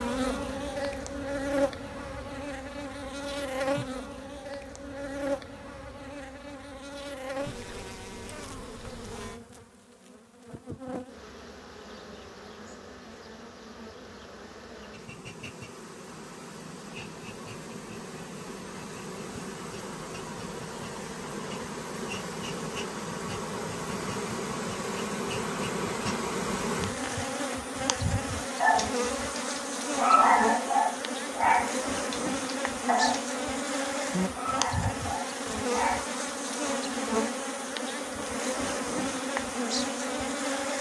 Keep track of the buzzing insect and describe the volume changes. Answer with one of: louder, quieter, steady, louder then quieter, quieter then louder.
quieter then louder.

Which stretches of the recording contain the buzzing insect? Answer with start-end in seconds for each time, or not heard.
0.0-40.7.